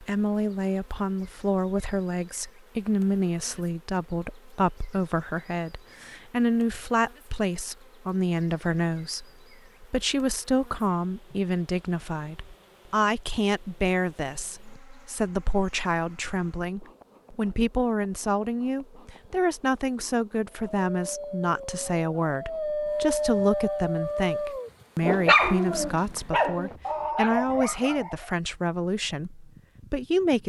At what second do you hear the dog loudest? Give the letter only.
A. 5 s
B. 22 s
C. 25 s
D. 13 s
C.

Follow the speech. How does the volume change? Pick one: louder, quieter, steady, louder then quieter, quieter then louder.
steady.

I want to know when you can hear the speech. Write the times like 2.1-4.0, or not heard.
0.0-30.4.